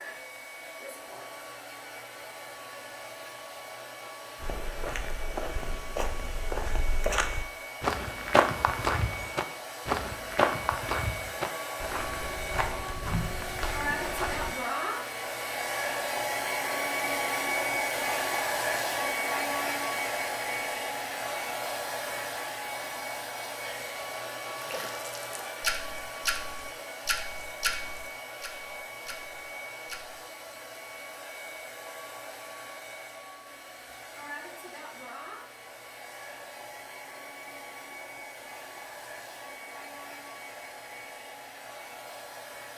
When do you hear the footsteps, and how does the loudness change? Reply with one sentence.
The footsteps can be heard from 4.3 to 14.6 s, getting louder then quieter.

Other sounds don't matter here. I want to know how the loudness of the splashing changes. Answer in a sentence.
The volume of the splashing goes down.